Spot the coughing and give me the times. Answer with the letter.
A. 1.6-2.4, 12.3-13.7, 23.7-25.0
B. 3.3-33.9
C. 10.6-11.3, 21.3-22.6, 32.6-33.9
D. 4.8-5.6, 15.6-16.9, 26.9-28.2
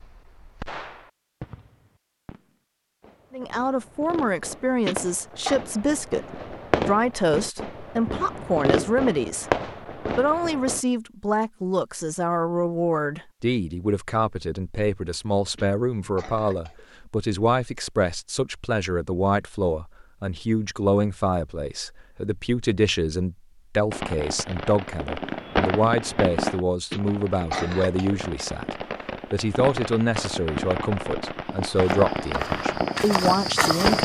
D.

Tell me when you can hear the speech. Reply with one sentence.
You can hear the speech from 3.3 to 33.9 s.